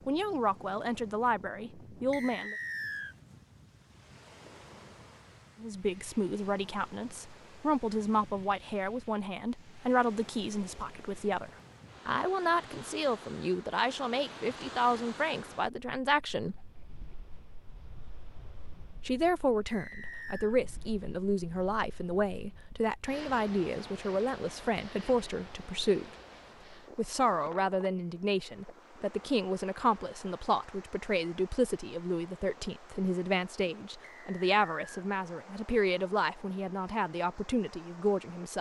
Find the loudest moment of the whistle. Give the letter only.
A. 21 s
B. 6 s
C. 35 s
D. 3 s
D.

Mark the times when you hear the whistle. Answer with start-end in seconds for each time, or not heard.
2.1-3.1, 19.6-20.6, 34.0-35.0.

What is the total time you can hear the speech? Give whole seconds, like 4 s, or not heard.
32 s.